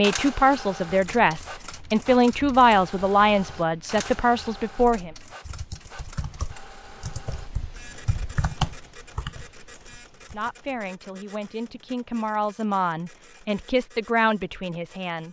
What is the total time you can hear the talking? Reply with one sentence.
You can hear the talking for 10 seconds altogether.